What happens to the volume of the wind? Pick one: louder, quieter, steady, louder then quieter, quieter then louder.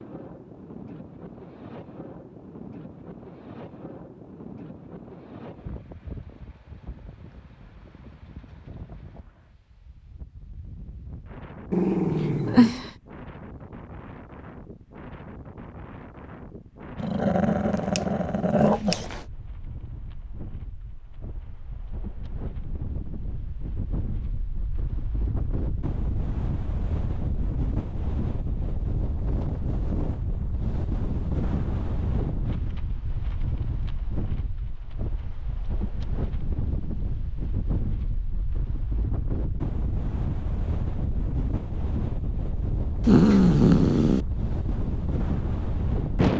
louder.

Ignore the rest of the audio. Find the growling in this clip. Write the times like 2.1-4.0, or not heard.
11.7-12.9, 17.0-19.2, 43.0-44.2.